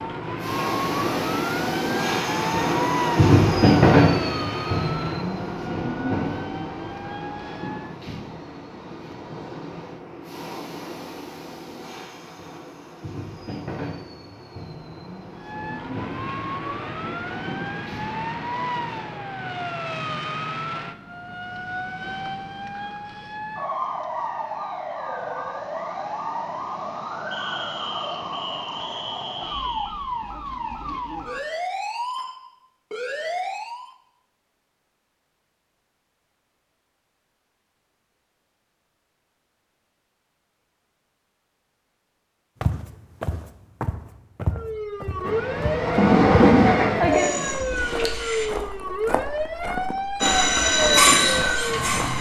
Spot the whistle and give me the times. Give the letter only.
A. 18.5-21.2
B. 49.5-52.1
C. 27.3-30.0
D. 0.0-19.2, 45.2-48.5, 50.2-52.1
C.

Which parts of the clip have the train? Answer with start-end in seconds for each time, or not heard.
0.0-19.2, 45.2-48.5, 50.2-52.1.